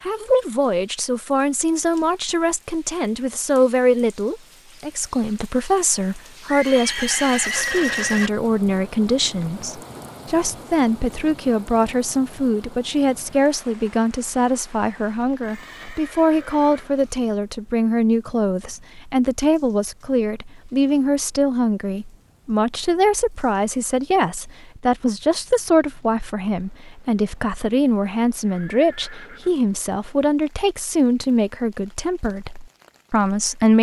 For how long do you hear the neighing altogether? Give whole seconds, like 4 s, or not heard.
5 s.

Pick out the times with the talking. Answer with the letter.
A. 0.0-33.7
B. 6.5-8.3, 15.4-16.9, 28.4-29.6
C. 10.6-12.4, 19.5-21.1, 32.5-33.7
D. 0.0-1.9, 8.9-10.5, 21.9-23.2
A.